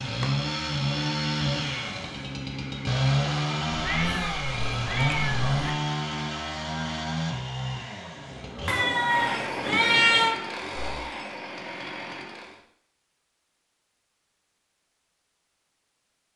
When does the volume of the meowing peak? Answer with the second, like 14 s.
10 s.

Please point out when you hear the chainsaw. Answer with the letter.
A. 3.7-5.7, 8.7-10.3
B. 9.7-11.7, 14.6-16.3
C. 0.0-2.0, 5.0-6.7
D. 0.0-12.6
D.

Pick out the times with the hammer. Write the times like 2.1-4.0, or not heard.
not heard.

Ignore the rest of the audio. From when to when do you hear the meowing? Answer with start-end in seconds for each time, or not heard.
3.7-5.7, 8.7-10.3.